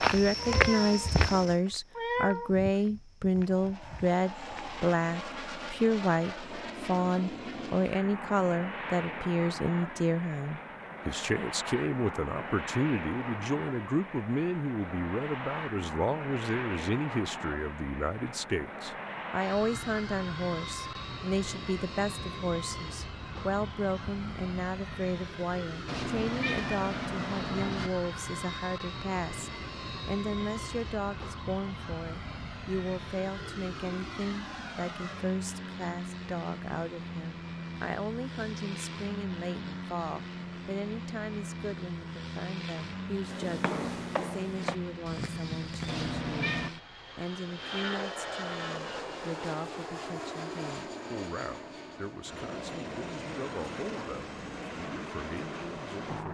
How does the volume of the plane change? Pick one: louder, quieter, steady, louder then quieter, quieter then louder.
steady.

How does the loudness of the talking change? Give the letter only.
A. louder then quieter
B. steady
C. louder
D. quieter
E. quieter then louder
D.